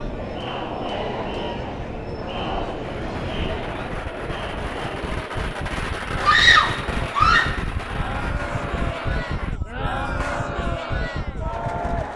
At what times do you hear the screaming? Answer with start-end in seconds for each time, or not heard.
6.2-7.6.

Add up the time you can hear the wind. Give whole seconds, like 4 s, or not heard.
12 s.